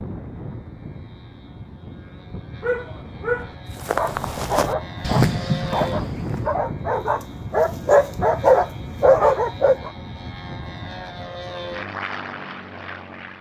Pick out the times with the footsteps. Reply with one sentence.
You can hear the footsteps from 3.7 to 6.6 s.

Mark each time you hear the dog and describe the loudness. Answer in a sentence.
You can hear the dog from 2.6 to 9.9 s, getting louder.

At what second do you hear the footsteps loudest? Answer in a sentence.
The volume of the footsteps peaks at 5 seconds.